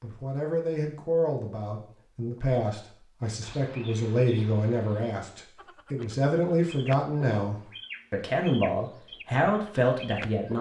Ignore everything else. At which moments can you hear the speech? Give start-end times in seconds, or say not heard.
0.0-10.5.